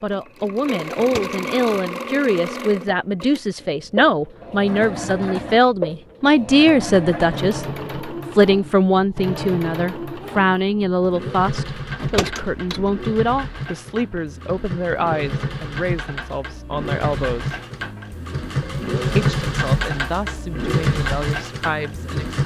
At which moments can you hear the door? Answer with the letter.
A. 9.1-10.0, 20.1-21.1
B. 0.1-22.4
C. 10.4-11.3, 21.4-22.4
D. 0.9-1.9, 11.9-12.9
D.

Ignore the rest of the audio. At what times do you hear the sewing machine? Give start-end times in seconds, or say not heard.
0.1-22.4.